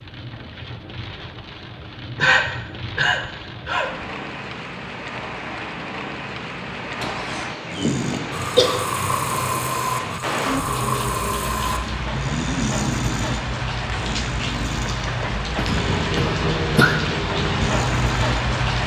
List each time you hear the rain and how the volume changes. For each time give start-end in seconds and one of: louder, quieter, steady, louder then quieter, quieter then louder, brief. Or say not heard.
0.0-18.8 louder.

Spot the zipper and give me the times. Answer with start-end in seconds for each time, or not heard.
not heard.